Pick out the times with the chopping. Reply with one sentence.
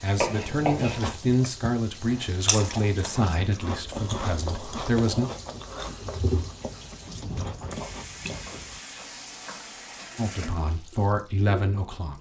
The chopping can be heard from 0.1 to 1.0 s and from 8.3 to 10.1 s.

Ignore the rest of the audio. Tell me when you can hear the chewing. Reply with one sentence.
You can hear the chewing from 0.8 to 8.8 s.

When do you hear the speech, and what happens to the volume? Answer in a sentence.
You can hear the speech from 0.0 to 5.2 s, getting quieter; and briefly from 10.2 to 12.1 s.